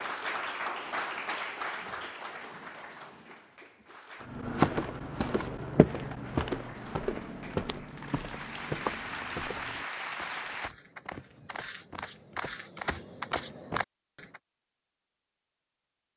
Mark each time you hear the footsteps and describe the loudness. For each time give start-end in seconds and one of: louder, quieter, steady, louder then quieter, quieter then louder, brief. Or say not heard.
4.2-14.4 quieter then louder.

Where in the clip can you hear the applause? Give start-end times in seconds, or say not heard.
0.0-4.3, 6.2-10.7.